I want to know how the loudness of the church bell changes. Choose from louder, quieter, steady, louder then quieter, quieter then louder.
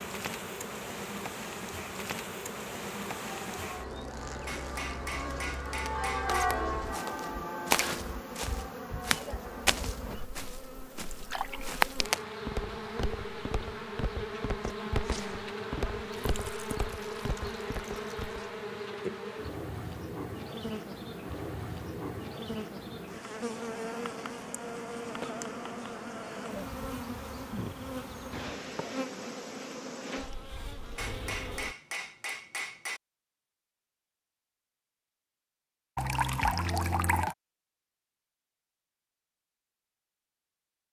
louder then quieter.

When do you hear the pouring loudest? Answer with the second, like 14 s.
36 s.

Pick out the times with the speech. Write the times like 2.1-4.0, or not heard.
not heard.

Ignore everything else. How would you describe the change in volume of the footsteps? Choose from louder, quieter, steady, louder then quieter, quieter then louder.
quieter.